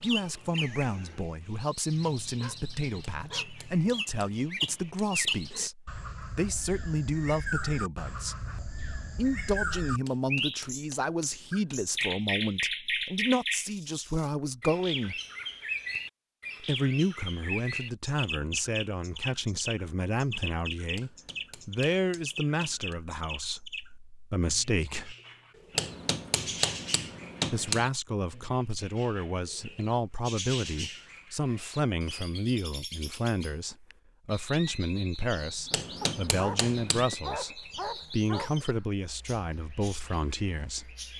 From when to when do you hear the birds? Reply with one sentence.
The birds can be heard from 0.0 to 41.1 s.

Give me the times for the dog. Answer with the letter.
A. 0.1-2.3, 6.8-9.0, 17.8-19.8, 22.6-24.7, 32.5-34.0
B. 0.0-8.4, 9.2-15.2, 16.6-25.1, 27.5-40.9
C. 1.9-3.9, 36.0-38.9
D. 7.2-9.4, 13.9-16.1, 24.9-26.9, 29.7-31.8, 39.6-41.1
C.